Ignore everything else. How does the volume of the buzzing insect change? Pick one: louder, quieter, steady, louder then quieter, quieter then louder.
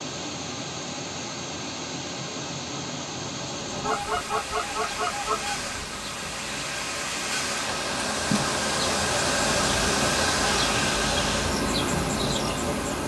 louder.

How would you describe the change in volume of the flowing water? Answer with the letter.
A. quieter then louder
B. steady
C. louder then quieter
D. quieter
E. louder
E.